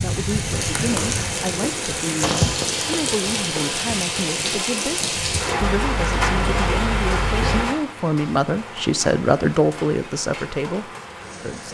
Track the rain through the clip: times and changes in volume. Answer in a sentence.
The rain can be heard from 0.0 to 11.6 s, getting quieter.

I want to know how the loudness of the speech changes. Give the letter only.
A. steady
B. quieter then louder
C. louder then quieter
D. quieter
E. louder
E.